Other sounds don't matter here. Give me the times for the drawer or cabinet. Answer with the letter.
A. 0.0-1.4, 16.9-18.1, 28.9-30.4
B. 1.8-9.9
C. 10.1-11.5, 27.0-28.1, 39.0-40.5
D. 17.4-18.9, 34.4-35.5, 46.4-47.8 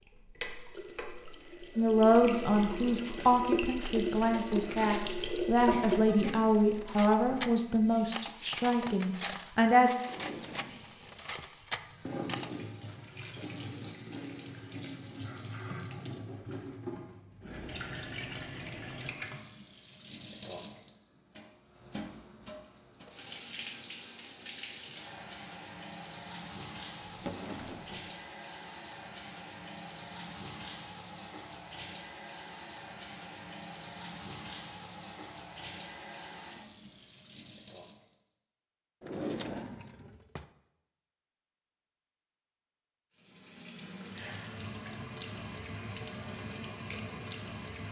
C.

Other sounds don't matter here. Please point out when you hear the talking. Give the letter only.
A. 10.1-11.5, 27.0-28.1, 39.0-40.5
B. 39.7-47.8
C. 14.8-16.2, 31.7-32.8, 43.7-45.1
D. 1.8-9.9
D.